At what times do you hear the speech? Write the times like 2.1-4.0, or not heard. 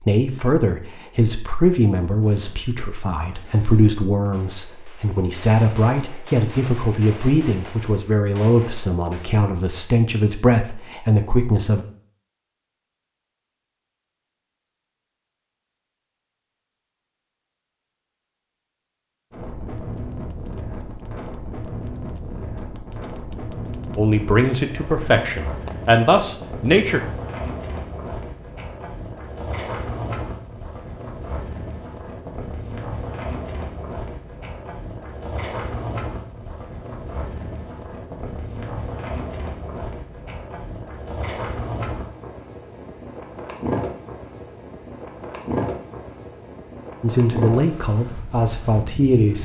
0.0-11.8, 23.9-27.0, 47.0-49.3.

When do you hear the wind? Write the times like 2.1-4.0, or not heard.
19.3-49.3.